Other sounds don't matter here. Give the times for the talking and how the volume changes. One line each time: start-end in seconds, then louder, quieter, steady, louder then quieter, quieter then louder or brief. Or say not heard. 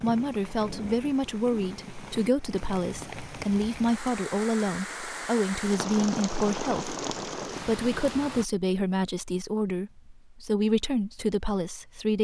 0.0-12.1 steady.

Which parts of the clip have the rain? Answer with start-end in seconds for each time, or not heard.
0.0-8.4.